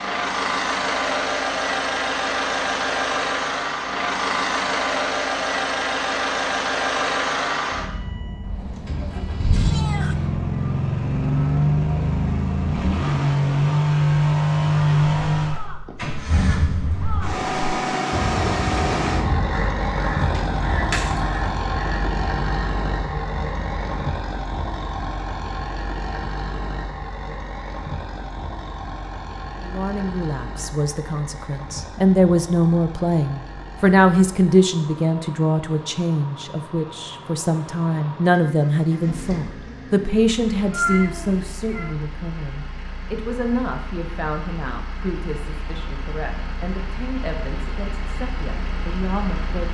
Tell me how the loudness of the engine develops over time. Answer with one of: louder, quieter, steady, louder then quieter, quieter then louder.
quieter.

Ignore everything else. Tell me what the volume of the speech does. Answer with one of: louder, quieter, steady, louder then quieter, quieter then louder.
quieter.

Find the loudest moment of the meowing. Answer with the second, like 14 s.
41 s.